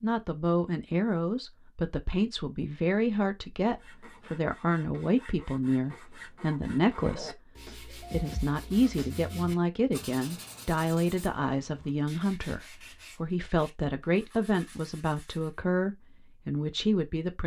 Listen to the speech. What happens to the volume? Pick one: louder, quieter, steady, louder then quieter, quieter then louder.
steady.